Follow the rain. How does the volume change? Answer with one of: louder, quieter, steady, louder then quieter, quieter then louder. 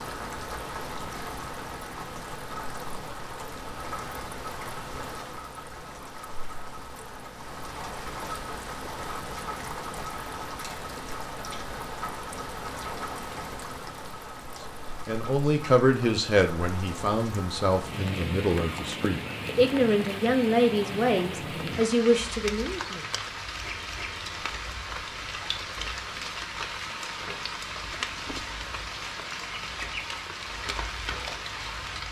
steady.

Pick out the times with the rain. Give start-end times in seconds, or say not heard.
0.0-32.0.